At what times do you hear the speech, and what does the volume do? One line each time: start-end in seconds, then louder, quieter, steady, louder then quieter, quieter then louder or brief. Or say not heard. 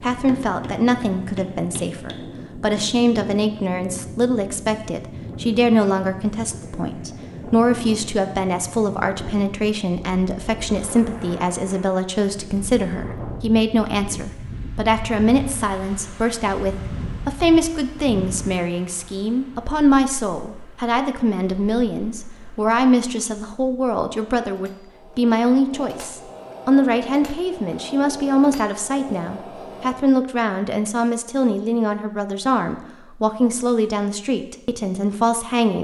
0.0-35.7 steady.